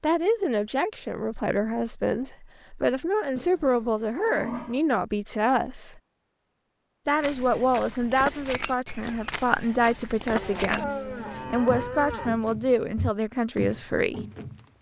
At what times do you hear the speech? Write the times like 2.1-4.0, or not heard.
0.0-6.0, 7.0-14.2.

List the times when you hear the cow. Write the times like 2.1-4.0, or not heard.
3.4-4.8, 10.2-12.3.